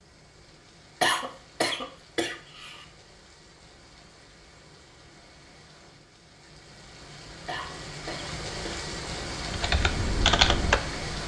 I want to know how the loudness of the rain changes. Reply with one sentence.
The volume of the rain goes up.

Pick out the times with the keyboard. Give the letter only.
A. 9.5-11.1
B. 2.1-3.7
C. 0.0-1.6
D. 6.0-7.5
A.